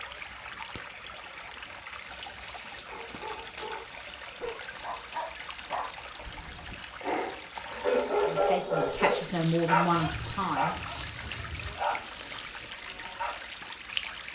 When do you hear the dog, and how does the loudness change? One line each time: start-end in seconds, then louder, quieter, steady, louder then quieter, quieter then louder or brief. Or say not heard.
2.9-13.4 louder then quieter.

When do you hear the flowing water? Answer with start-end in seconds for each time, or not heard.
0.0-14.3.